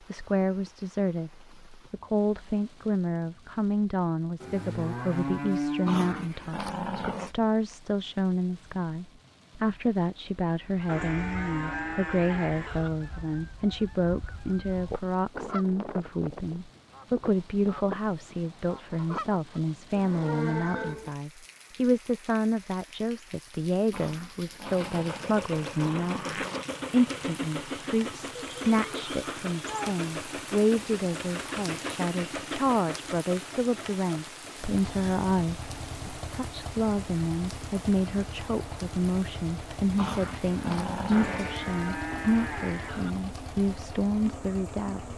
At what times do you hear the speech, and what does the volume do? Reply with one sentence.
The speech can be heard from 0.1 to 45.1 s, at a steady volume.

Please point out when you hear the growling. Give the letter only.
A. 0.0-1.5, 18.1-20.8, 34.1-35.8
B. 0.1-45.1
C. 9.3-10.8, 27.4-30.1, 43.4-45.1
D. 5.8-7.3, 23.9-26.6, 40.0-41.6
D.